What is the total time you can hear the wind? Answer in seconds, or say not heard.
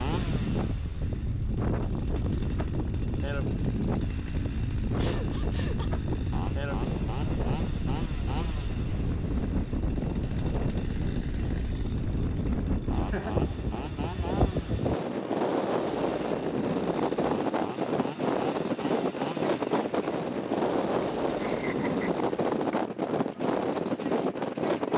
25 s.